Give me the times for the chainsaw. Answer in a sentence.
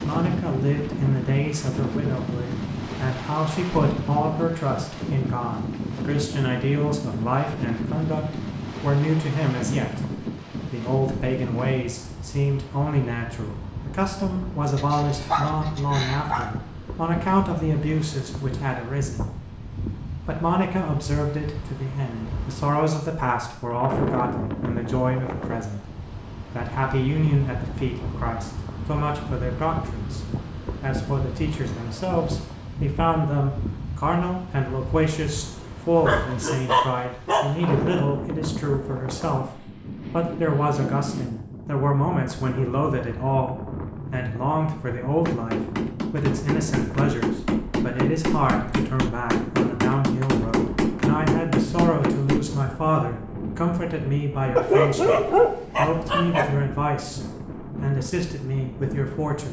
The chainsaw can't be heard in this clip.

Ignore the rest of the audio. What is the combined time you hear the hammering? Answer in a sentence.
The hammering can be heard for 7 seconds in total.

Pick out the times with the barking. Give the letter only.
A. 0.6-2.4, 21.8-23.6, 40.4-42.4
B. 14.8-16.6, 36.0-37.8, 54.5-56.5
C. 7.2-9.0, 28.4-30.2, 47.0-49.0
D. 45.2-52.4
B.